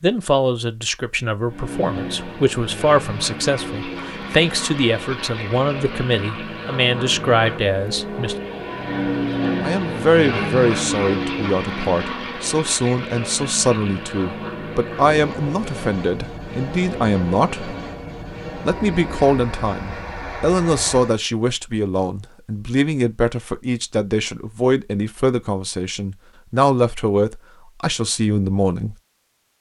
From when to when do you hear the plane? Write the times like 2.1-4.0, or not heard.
1.4-21.2.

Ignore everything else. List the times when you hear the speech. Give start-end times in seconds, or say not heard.
0.0-8.3, 9.6-17.8, 18.6-28.9.